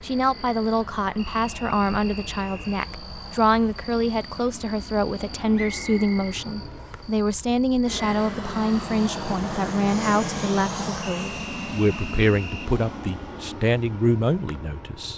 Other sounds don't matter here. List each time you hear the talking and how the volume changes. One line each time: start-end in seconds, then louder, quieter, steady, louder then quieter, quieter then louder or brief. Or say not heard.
0.0-15.1 steady.